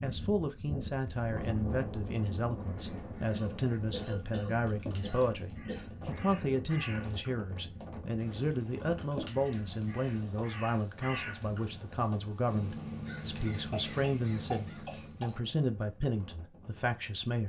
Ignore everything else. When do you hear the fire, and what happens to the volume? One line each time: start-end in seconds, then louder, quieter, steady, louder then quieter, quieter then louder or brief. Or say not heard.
not heard.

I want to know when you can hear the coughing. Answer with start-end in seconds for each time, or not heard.
3.3-5.9, 13.7-15.3.